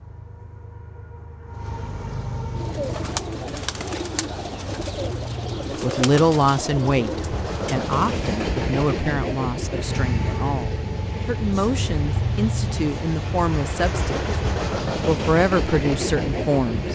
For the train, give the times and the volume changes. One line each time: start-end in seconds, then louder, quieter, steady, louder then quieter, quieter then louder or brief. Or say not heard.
0.0-16.8 louder.